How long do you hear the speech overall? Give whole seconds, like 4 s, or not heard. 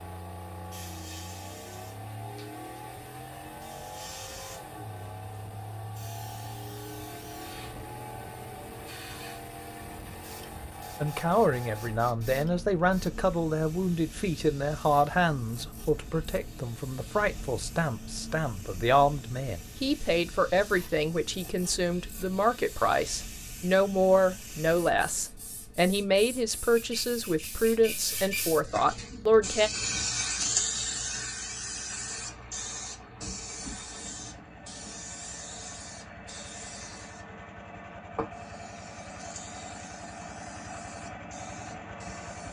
19 s.